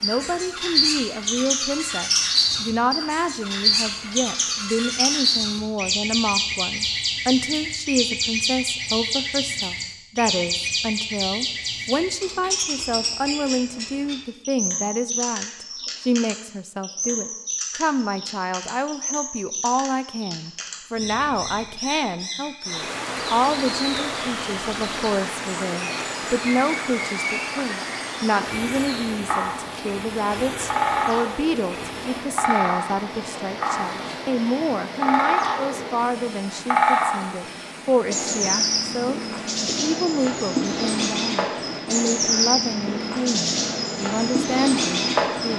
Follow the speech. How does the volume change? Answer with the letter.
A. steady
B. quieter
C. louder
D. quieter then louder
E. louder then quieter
A.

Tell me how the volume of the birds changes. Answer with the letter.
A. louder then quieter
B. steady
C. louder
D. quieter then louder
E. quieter
D.